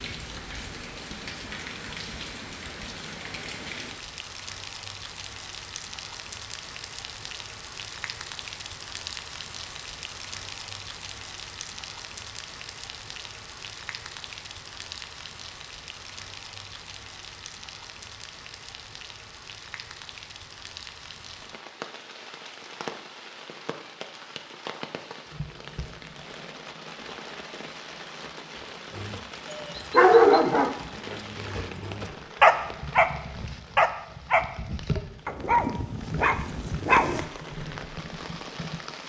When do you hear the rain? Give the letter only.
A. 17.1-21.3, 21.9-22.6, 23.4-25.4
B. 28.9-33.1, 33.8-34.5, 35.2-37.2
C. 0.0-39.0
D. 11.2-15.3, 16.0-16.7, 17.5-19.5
C.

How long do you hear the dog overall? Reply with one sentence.
You can hear the dog for 7 seconds altogether.